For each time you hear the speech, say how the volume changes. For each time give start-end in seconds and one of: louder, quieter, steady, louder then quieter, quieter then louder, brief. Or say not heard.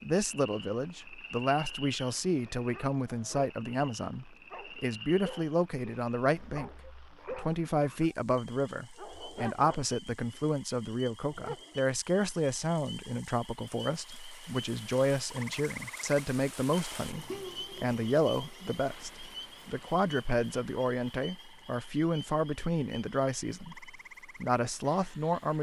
0.0-25.5 steady.